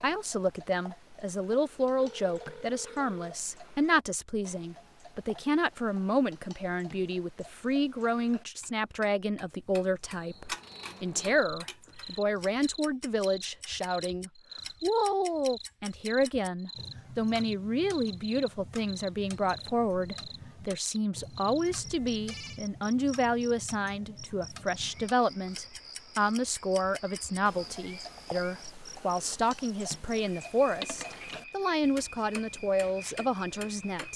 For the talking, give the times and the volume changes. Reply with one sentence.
The talking can be heard from 0.0 to 34.1 s, at a steady volume.